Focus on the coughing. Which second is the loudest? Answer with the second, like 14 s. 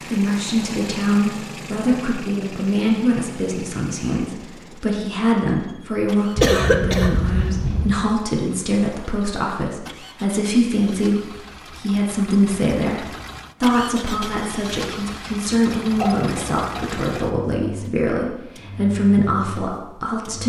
7 s.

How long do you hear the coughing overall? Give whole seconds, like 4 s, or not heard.
3 s.